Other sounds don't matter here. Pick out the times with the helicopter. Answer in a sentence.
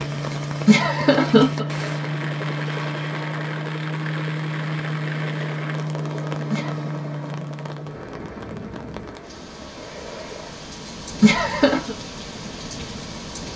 You can hear the helicopter from 0.0 to 10.7 s.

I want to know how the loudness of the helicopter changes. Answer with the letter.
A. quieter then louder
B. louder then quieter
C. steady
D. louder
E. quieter
E.